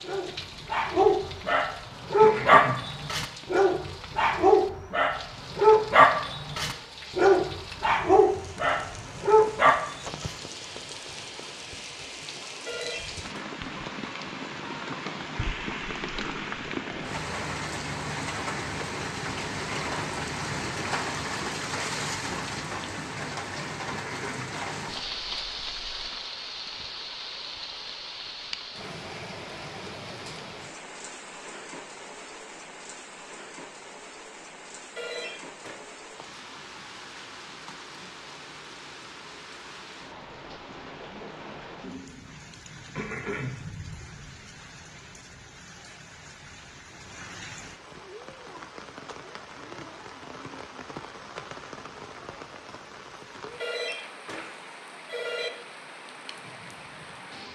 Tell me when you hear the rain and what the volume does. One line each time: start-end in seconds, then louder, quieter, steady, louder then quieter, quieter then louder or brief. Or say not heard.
0.0-57.4 louder then quieter.